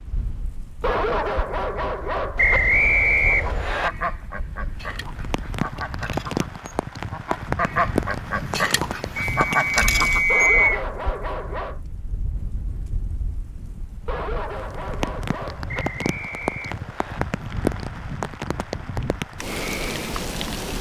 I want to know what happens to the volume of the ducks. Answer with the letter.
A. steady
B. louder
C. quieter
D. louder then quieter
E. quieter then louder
E.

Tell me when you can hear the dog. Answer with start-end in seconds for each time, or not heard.
0.8-2.6, 10.2-11.8, 14.1-15.8.